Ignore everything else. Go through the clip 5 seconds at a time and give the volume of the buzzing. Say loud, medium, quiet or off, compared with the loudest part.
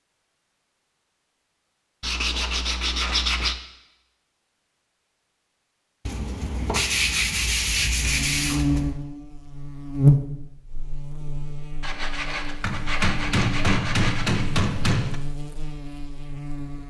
off, loud, loud, medium.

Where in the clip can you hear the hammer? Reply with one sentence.
You can hear the hammer from 12.6 to 15.2 s.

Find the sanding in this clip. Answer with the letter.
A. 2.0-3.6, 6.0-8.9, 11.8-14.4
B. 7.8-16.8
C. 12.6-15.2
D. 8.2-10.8
A.